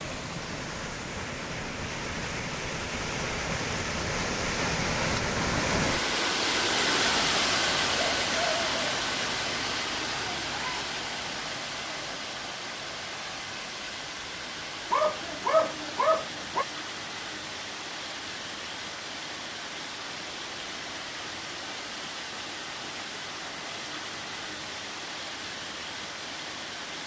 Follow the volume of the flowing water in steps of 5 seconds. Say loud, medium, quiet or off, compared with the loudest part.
medium, loud, medium, medium, medium, medium.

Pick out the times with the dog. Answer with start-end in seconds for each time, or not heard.
14.9-16.6.